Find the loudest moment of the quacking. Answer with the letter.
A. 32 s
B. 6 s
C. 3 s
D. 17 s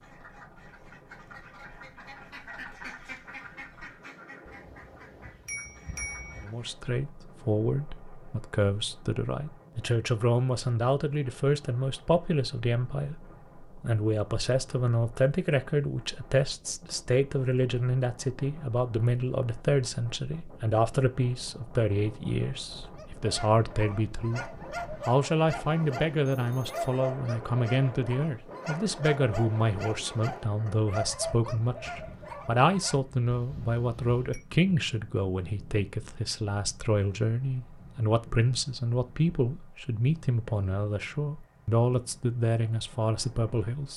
C.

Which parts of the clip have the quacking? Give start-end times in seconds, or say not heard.
0.0-6.8.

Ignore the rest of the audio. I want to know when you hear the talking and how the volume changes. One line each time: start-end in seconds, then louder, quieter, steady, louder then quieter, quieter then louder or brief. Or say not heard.
6.4-43.9 steady.